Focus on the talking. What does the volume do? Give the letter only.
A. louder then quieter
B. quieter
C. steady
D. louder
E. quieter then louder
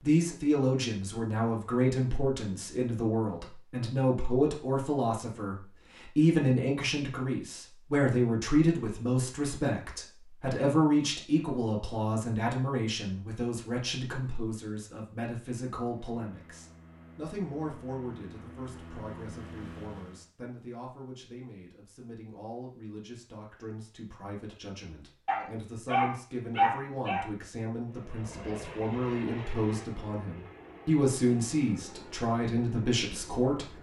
E.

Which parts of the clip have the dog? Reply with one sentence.
You can hear the dog from 25.2 to 27.2 s.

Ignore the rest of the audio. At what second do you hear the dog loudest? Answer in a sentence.
The loudest moment of the dog is at 27 seconds.